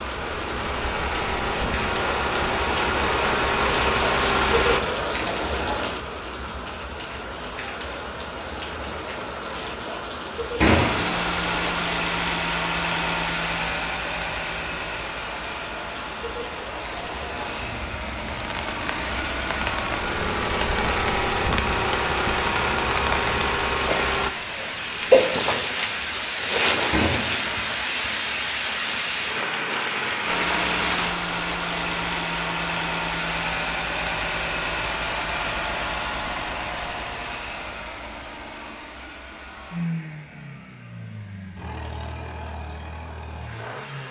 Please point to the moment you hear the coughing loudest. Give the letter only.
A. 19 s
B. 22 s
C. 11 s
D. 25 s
D.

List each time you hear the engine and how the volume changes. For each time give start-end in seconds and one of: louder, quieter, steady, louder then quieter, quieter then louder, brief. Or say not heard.
0.0-4.8 louder
10.7-24.3 quieter then louder
30.2-44.0 quieter.